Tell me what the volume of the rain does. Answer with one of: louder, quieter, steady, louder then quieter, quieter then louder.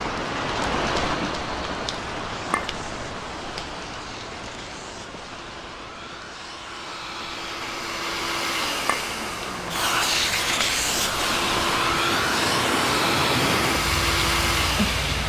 quieter then louder.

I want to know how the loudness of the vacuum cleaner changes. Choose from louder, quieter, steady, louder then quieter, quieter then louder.
louder.